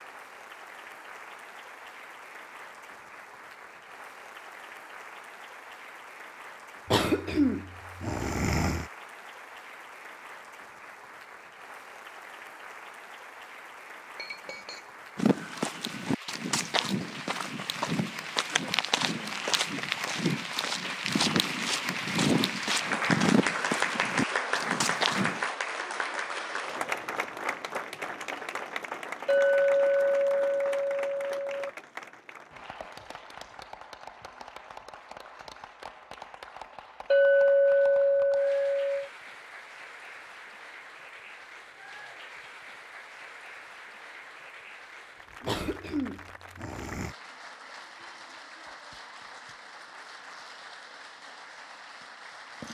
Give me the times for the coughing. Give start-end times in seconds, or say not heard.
6.8-8.8, 45.5-47.1.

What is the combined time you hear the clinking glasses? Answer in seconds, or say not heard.
5 s.